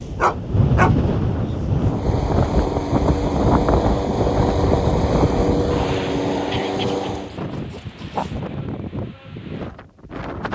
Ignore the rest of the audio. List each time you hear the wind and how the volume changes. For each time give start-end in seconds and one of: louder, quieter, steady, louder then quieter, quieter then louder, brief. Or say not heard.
0.0-10.5 quieter.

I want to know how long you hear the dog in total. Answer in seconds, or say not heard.
3 s.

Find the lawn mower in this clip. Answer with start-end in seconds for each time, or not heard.
1.8-7.3.